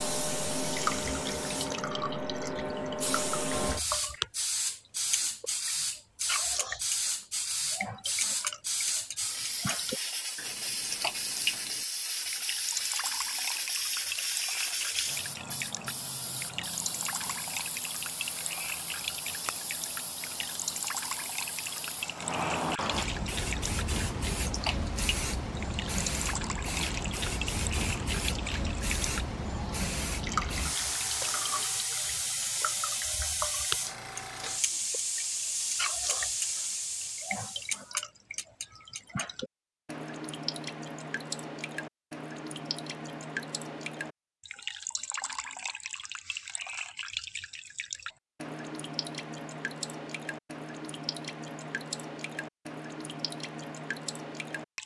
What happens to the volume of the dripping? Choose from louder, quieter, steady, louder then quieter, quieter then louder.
steady.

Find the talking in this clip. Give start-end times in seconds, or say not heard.
not heard.